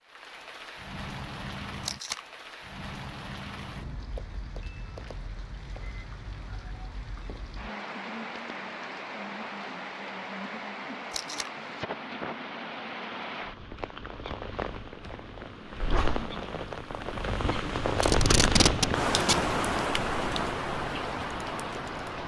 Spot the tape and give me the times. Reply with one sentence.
The tape can be heard from 1.8 to 2.2 s, from 11.1 to 11.5 s and from 18.0 to 19.4 s.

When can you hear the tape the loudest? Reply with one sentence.
The volume of the tape peaks at 19 seconds.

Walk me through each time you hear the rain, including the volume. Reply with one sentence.
The rain can be heard from 0.0 to 22.2 s, getting louder.